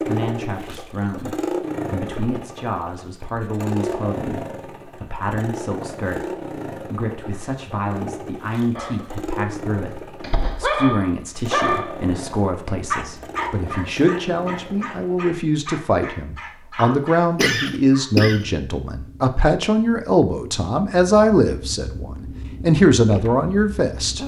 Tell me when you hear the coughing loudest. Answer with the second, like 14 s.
18 s.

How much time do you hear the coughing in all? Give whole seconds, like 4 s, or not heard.
2 s.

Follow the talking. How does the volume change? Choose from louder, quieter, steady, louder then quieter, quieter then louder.
louder.